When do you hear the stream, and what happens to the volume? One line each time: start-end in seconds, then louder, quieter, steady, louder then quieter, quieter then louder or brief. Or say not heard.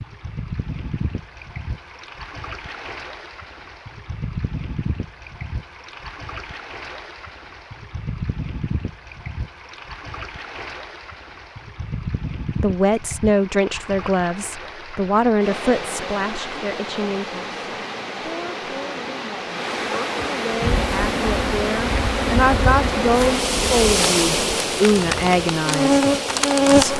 0.0-26.9 louder.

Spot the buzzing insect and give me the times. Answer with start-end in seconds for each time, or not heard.
20.5-26.9.